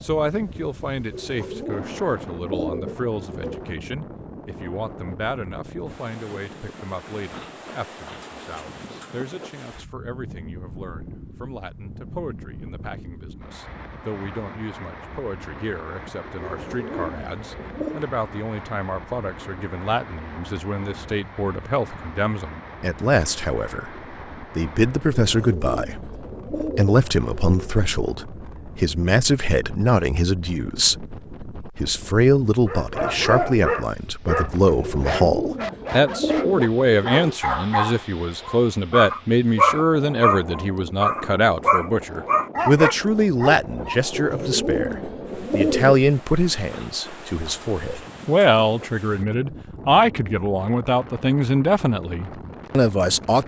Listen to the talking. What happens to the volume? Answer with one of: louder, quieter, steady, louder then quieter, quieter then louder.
louder.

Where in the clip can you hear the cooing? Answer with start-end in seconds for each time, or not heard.
1.1-3.6, 16.4-18.1, 25.1-27.9, 34.8-37.4, 44.1-46.0.